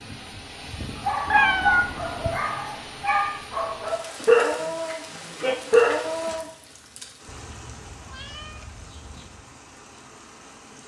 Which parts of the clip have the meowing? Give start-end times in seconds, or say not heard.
1.2-2.4, 7.2-9.3.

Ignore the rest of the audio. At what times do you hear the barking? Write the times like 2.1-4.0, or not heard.
0.9-6.5.